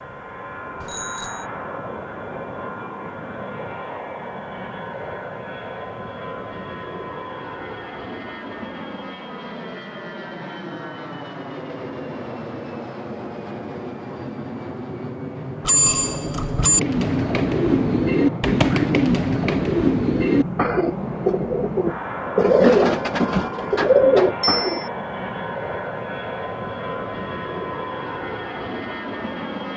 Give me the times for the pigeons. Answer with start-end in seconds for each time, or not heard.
16.6-24.8.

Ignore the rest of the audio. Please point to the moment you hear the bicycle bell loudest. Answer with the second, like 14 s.
16 s.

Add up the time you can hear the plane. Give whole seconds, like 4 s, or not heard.
30 s.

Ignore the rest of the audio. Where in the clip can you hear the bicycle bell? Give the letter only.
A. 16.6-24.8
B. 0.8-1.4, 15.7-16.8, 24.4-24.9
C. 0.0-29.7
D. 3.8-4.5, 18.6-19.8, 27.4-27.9
B.